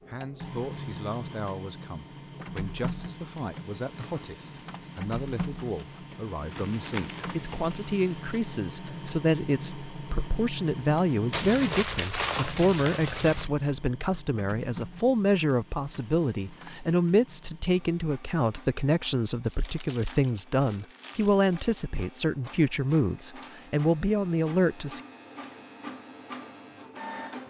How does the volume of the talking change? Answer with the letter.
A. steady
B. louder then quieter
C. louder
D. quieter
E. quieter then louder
C.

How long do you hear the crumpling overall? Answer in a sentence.
You can hear the crumpling for 5 seconds altogether.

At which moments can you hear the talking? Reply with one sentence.
The talking can be heard from 0.1 to 25.0 s.